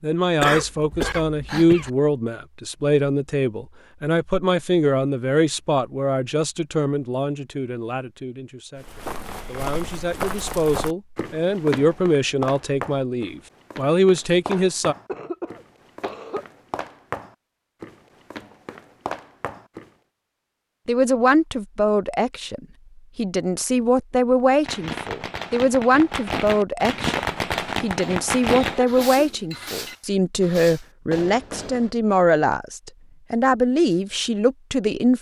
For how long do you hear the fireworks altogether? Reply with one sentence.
You can hear the fireworks for 7 seconds altogether.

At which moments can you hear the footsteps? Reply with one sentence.
You can hear the footsteps from 8.8 to 19.9 s.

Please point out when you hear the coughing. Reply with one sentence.
The coughing can be heard from 0.4 to 1.9 s, from 14.5 to 16.4 s and from 28.0 to 29.9 s.